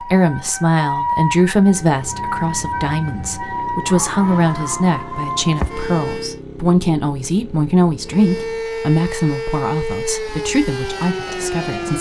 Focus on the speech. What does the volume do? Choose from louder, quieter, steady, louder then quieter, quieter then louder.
quieter.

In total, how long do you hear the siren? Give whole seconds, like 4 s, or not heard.
10 s.